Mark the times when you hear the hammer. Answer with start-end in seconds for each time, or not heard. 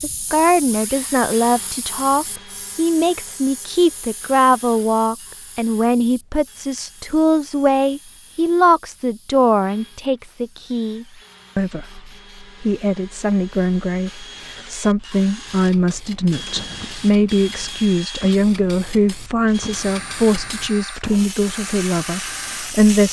not heard.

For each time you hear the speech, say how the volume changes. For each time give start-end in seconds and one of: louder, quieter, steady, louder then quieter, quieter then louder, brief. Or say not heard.
0.0-23.0 steady.